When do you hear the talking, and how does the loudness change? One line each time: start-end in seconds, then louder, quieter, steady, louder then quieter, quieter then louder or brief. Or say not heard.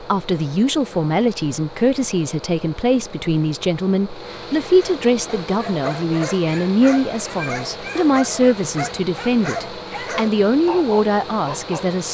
0.0-12.1 steady.